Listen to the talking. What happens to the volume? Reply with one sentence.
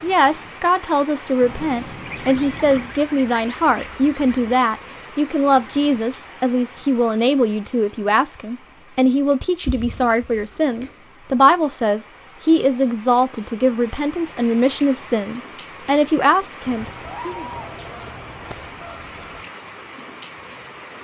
The volume of the talking stays about the same.